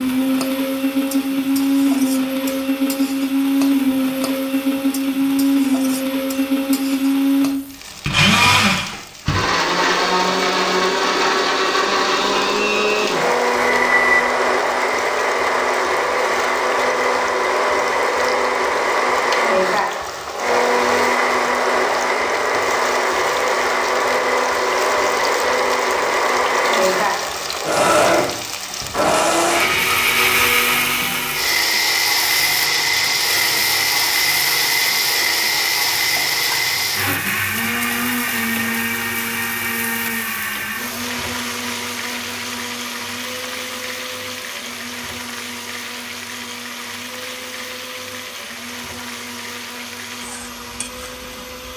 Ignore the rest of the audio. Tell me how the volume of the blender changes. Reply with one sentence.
The loudness of the blender goes down.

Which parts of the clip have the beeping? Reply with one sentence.
The beeping can be heard from 13.6 to 14.3 s.